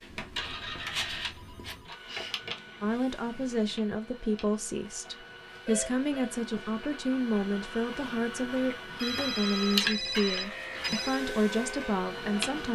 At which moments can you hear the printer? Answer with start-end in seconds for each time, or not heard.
0.0-12.7.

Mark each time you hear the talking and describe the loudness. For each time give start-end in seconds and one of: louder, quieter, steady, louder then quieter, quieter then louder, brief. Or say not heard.
2.8-12.7 steady.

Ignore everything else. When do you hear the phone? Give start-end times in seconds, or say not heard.
0.1-1.9, 5.7-6.3, 9.0-11.2.